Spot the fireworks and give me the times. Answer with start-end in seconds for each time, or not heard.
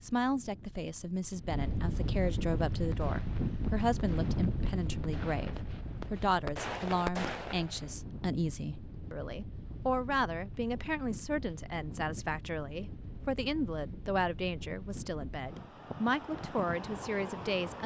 2.7-8.0.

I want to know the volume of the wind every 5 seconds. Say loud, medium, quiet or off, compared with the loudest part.
loud, medium, medium, medium.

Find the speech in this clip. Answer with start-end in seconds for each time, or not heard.
0.0-17.8.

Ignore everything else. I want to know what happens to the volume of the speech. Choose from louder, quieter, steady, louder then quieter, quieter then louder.
steady.